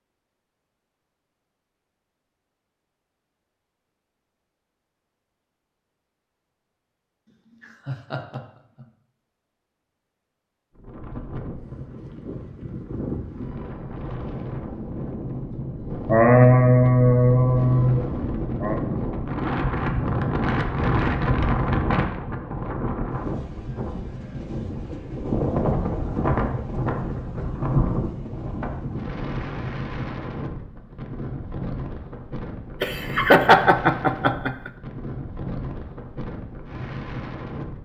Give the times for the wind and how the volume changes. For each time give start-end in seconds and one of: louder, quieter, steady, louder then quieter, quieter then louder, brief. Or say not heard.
10.8-37.8 louder then quieter.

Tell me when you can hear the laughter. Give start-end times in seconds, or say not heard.
7.6-8.8, 16.1-18.8, 32.8-34.7.